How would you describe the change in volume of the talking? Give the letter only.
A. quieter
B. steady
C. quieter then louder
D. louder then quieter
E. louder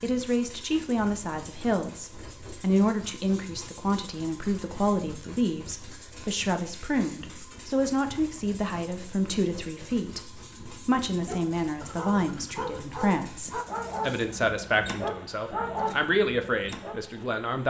B.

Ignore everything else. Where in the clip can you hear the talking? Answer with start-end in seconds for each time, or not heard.
0.0-17.6.